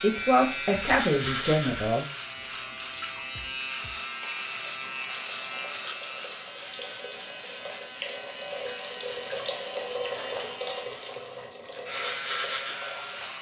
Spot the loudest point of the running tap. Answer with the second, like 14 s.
10 s.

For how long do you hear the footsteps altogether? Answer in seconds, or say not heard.
not heard.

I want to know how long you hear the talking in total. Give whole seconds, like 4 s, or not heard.
2 s.